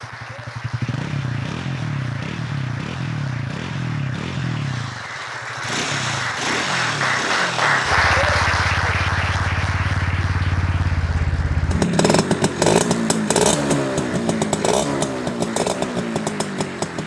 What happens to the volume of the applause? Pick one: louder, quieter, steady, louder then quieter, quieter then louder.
louder then quieter.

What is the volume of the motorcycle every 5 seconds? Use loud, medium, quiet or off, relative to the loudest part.
medium, medium, loud, loud.